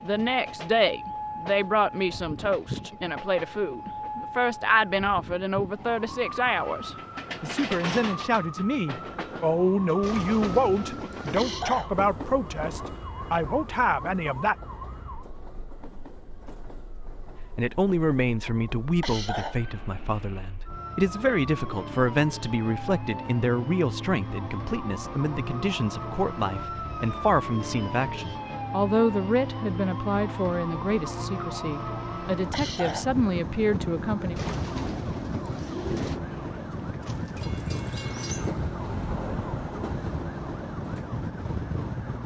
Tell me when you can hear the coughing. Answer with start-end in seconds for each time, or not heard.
11.3-11.9, 19.0-19.6, 32.5-33.0.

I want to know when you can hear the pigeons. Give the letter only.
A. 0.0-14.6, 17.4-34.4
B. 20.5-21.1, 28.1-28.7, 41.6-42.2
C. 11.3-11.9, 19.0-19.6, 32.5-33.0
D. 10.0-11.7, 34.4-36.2
D.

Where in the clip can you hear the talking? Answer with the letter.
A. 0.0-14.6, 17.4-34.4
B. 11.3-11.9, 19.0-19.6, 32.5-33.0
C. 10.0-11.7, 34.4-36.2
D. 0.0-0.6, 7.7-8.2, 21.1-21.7
A.